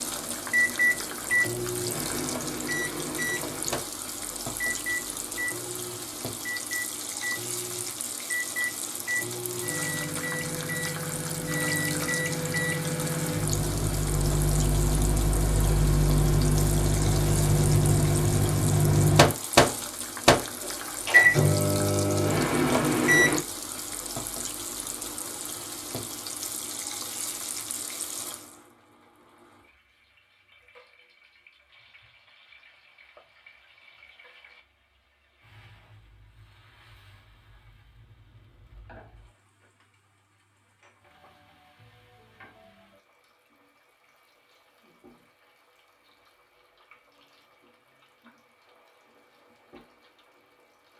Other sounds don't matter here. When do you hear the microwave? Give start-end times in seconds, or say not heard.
0.0-23.4.